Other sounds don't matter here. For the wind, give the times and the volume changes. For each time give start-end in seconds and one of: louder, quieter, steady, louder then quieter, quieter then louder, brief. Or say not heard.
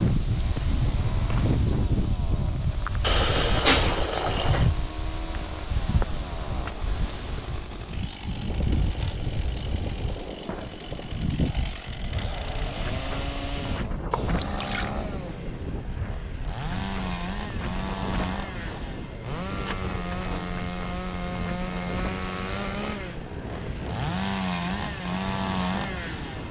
0.0-26.4 quieter.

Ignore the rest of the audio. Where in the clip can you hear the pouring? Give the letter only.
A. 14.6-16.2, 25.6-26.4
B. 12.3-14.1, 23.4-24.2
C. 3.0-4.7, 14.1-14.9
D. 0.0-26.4
C.